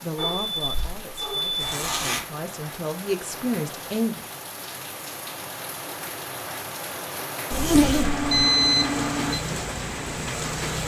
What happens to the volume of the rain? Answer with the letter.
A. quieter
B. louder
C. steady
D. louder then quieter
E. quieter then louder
B.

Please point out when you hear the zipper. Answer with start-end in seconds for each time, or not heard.
1.6-2.2, 7.5-8.2.